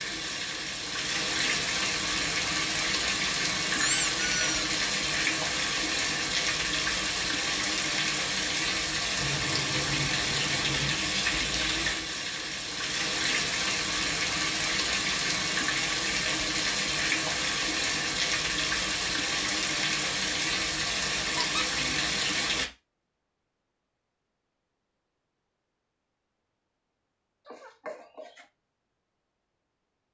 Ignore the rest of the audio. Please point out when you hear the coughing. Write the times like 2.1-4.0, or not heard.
not heard.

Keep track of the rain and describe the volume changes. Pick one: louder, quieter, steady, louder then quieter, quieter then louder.
steady.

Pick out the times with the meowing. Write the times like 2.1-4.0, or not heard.
9.2-11.0, 27.4-28.4.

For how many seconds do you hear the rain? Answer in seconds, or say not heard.
23 s.